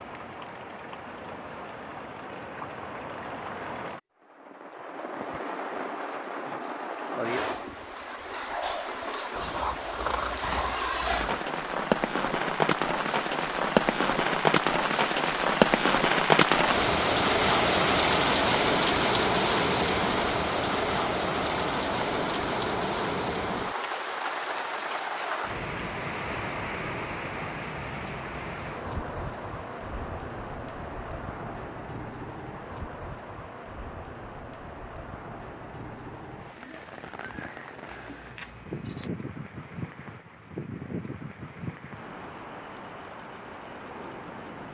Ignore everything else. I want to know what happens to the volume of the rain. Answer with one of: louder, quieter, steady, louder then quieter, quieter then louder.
louder then quieter.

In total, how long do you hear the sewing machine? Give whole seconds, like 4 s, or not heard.
not heard.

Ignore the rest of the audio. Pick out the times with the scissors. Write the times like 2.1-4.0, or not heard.
9.3-11.4, 37.9-39.1.